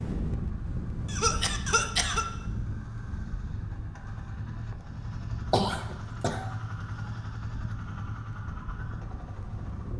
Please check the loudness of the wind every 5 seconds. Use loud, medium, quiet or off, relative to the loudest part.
loud, medium.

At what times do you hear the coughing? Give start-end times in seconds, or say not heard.
1.1-2.2, 5.5-6.5.